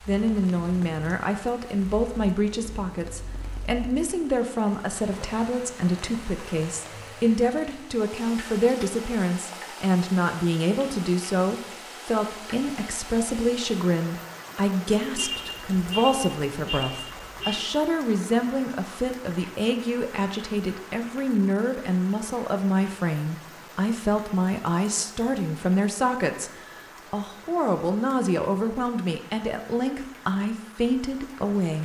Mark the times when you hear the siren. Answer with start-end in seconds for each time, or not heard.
not heard.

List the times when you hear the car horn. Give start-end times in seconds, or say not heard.
15.2-17.6.